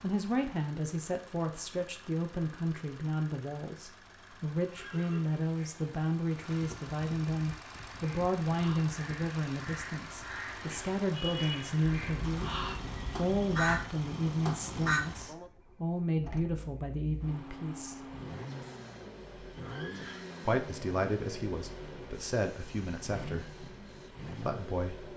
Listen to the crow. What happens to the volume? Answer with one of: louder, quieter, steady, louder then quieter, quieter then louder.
louder.